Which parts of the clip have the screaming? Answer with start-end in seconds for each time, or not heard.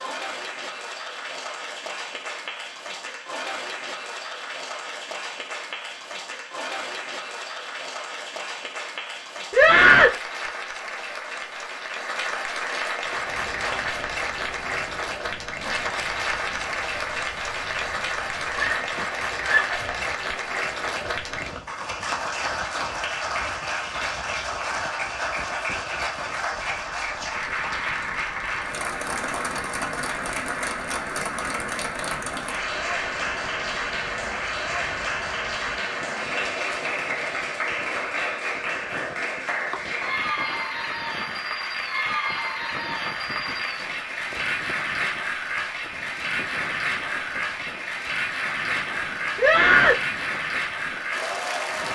9.5-10.2, 18.6-19.8, 49.4-50.0.